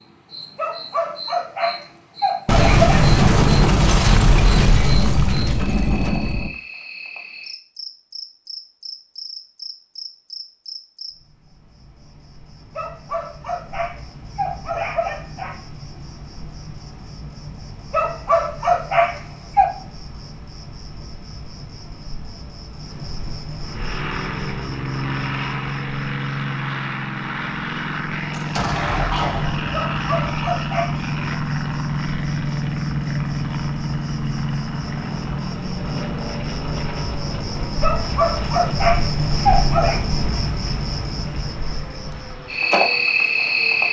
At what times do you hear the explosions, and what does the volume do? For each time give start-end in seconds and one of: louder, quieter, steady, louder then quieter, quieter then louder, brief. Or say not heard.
2.5-6.5 quieter
28.3-29.9 brief.